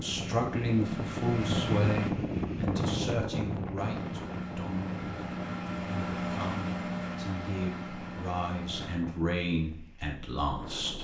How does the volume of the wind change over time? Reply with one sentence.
The volume of the wind goes down.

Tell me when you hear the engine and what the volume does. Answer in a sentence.
The engine can be heard briefly from 0.0 to 2.1 s; and from 3.8 to 9.0 s, getting louder then quieter.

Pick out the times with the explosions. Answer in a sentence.
You can't hear the explosions here.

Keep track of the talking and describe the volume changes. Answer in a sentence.
The volume of the talking goes down, then up.